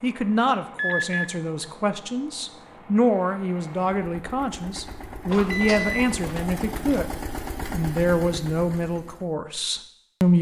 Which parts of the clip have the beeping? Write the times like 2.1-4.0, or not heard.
0.8-1.2, 5.3-6.5.